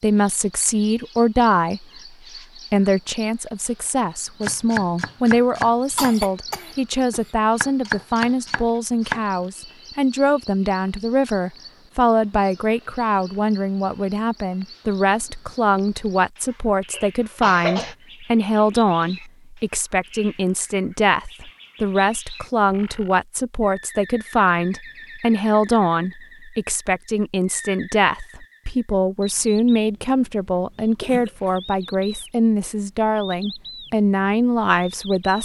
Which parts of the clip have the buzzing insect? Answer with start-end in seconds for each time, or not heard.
not heard.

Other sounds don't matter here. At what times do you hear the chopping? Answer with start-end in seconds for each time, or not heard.
4.4-9.2.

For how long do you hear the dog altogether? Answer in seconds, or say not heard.
not heard.